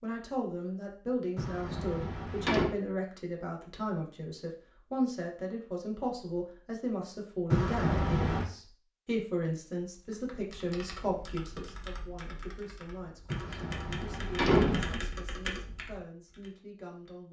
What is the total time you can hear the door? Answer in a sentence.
You can hear the door for 4 seconds altogether.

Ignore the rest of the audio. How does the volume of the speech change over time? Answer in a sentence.
The volume of the speech goes down.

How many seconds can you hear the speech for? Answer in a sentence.
You can hear the speech for 17 seconds altogether.